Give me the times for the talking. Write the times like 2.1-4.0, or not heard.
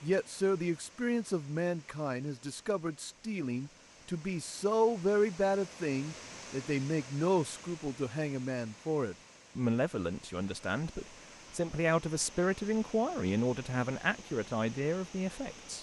0.0-15.7.